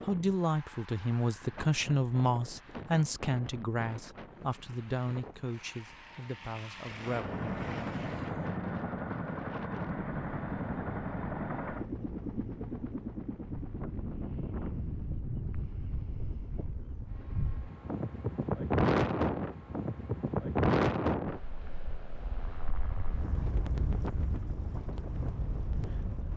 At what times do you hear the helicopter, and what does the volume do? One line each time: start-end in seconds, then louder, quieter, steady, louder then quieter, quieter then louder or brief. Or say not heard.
6.8-26.3 quieter.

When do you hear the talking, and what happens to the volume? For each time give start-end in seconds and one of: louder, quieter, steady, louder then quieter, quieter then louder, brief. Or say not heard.
0.0-8.1 quieter.